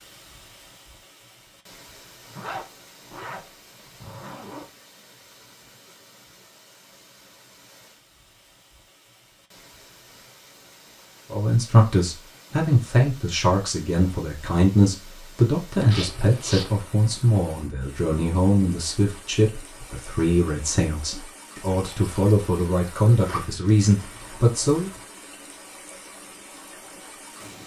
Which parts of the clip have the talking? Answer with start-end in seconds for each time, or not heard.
11.3-24.9.